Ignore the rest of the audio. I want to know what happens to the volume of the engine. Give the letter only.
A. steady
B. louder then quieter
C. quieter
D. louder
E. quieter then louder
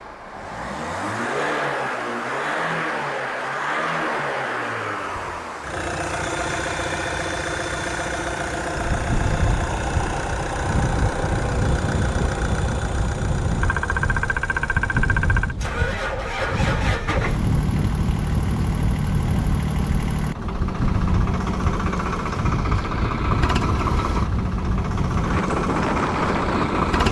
A.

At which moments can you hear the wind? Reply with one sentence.
You can hear the wind from 8.7 to 27.0 s.